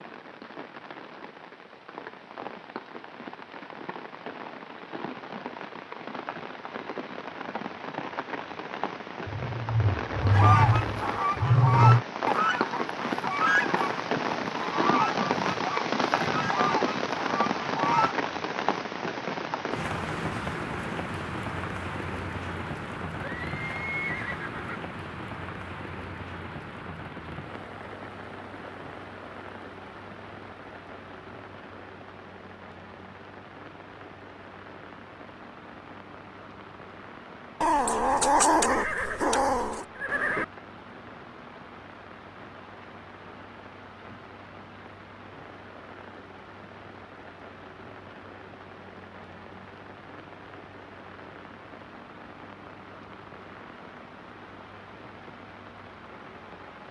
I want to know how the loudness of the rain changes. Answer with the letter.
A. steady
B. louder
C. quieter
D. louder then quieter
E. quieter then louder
D.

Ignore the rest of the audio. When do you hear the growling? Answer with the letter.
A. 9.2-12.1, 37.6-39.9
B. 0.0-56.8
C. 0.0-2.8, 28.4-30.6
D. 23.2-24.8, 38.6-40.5
A.